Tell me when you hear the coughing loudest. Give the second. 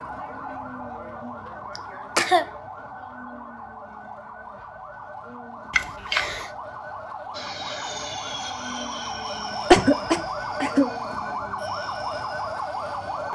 10 s.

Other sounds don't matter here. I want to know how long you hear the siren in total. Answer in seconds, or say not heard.
13 s.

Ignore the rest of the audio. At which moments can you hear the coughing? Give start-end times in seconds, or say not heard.
1.8-2.5, 5.7-6.5, 9.7-10.9.